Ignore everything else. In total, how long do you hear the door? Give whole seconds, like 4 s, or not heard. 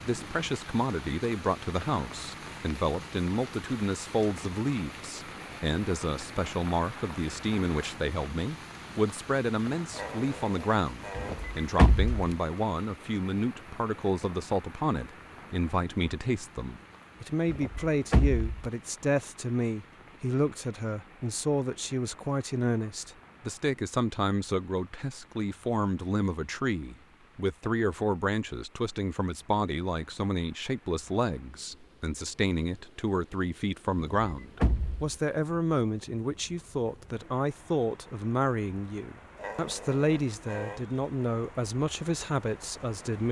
4 s.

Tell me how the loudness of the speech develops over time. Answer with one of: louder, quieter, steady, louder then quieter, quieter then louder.
steady.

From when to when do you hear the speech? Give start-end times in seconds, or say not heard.
0.0-43.2.